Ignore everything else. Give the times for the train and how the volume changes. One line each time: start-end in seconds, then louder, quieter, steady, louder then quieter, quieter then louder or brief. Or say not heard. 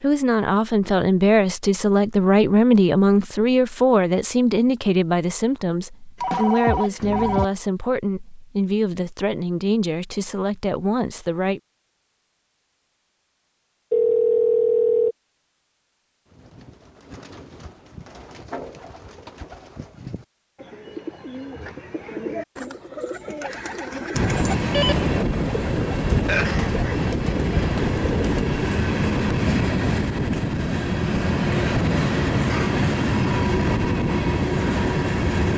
24.1-35.5 steady.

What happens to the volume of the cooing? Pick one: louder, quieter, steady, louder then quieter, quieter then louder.
louder.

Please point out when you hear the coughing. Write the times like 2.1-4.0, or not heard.
26.2-27.0.